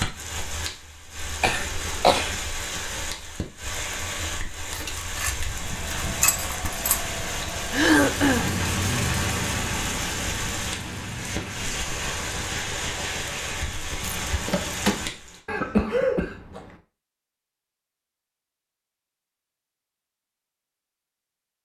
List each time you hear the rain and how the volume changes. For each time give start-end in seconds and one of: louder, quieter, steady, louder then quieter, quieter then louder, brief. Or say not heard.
0.0-15.4 steady.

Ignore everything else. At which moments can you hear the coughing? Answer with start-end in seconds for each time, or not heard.
1.4-2.4, 7.7-8.6, 15.4-16.8.